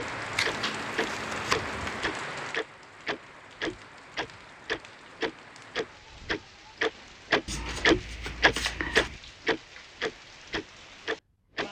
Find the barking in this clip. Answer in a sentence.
The barking can't be heard in this clip.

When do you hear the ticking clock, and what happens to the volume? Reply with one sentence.
The ticking clock can be heard from 0.0 to 11.6 s, getting louder then quieter.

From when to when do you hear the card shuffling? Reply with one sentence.
The card shuffling can be heard from 0.3 to 2.0 s and from 7.5 to 9.2 s.